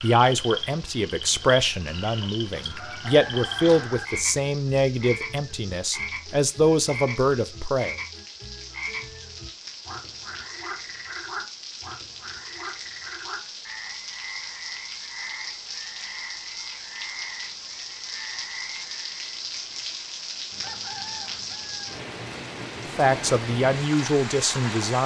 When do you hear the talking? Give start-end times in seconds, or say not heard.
0.0-8.0, 22.9-25.0.